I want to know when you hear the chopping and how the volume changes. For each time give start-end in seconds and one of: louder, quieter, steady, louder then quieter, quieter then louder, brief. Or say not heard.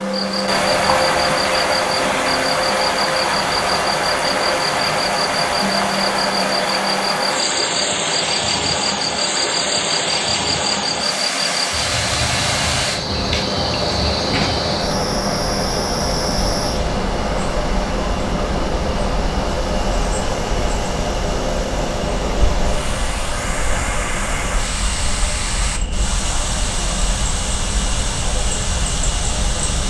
not heard.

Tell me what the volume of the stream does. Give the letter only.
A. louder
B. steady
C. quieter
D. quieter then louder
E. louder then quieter
C.